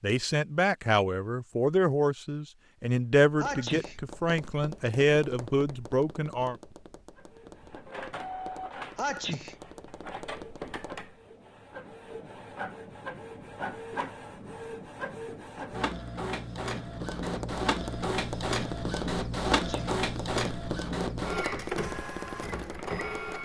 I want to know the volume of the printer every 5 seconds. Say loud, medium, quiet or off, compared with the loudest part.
off, medium, medium, loud, loud.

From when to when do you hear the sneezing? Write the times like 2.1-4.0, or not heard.
3.4-4.0, 8.9-9.6, 19.6-20.0.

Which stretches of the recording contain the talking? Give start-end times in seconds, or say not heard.
0.0-6.5.